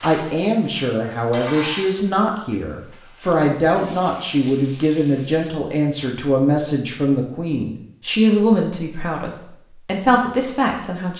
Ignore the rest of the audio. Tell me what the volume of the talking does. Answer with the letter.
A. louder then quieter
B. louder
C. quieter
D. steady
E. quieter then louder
D.